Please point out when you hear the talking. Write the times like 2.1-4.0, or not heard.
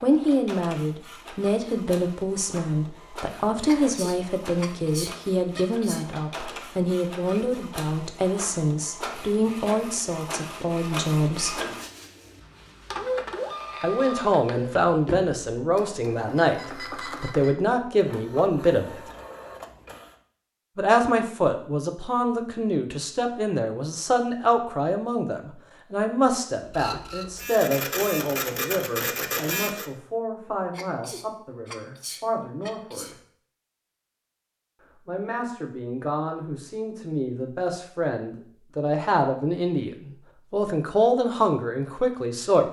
0.0-11.6, 13.8-19.0, 20.8-33.1, 35.0-42.6.